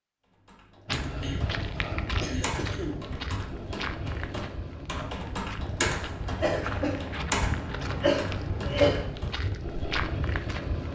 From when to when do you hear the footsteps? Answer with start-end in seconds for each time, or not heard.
0.8-10.9.